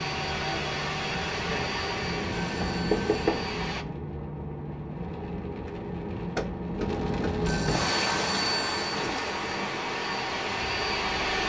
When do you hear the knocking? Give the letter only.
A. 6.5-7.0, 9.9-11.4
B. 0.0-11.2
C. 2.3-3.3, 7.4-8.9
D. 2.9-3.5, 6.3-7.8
D.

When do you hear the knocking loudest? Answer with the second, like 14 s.
3 s.